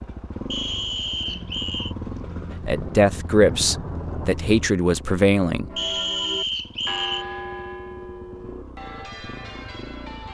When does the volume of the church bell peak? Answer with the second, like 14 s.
7 s.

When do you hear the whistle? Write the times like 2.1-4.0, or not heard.
0.5-1.9, 5.8-7.2.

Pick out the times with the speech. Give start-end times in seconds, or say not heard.
2.6-5.7.